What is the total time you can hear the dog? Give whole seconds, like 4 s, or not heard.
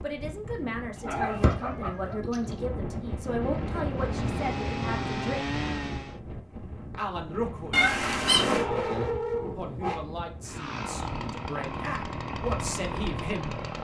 3 s.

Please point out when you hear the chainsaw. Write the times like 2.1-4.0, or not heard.
3.9-6.2, 10.4-13.7.